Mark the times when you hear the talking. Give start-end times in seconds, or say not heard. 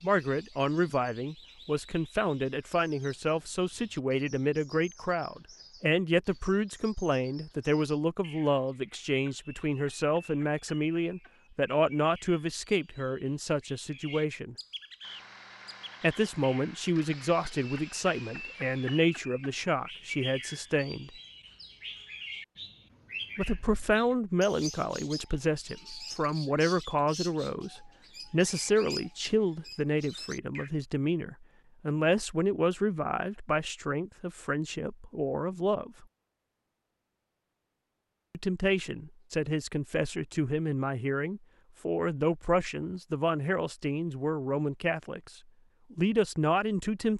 0.0-14.6, 16.0-21.1, 23.4-36.0, 38.3-45.3, 45.9-47.1.